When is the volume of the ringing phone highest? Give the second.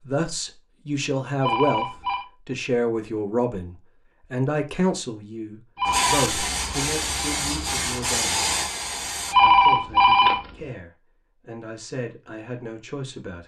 10 s.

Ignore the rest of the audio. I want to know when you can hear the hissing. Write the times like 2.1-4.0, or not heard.
5.8-9.3.